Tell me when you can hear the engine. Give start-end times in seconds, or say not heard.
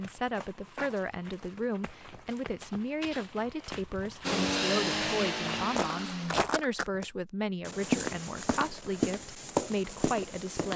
4.2-6.3.